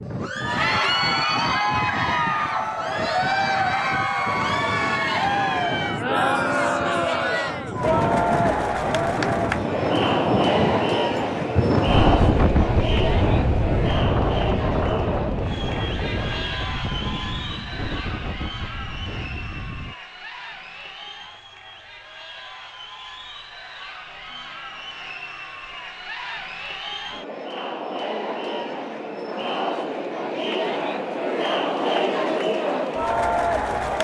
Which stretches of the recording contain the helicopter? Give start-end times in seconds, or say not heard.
not heard.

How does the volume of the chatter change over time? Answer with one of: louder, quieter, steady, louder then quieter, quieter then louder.
quieter then louder.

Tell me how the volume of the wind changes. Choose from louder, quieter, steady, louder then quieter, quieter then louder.
louder then quieter.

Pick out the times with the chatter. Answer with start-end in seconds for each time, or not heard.
0.1-33.9.